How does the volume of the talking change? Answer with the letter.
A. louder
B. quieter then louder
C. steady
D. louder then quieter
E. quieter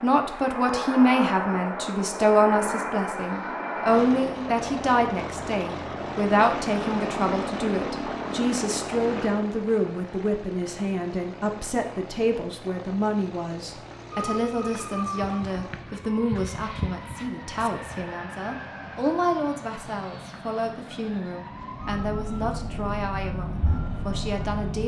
E.